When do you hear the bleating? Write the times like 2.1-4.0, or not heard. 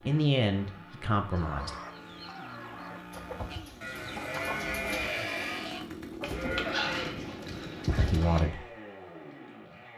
3.5-8.4.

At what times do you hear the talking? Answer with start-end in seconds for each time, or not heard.
0.1-1.8, 8.0-8.7.